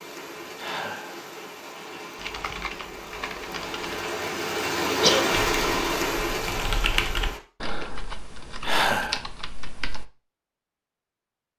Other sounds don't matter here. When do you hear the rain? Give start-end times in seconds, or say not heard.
0.0-7.4.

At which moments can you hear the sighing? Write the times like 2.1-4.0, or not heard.
0.6-1.2, 8.6-9.3.